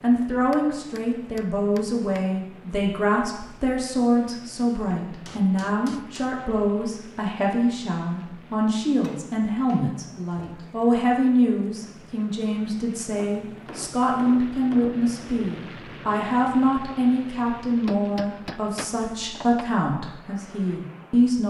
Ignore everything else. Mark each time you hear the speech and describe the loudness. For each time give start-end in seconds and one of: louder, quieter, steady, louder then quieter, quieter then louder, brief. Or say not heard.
0.0-21.4 steady.